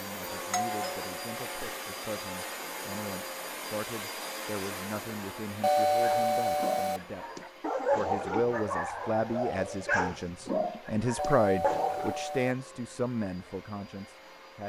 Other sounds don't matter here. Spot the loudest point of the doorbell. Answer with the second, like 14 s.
6 s.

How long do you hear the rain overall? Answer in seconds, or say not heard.
not heard.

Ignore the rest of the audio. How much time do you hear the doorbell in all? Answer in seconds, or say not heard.
4 s.